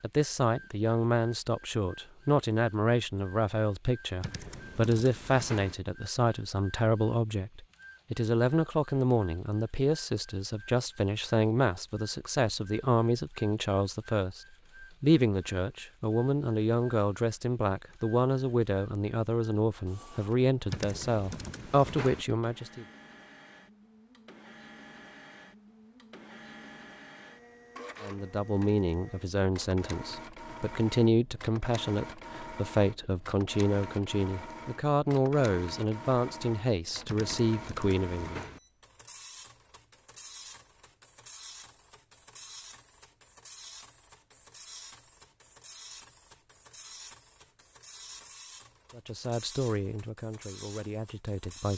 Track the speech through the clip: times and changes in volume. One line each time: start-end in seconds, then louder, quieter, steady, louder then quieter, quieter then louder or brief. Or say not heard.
0.0-22.9 steady
28.0-38.5 steady
49.0-51.7 brief.